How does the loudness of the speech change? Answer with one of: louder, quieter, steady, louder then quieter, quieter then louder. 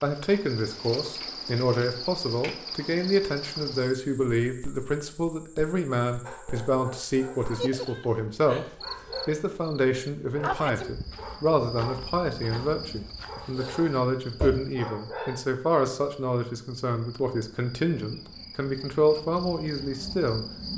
steady.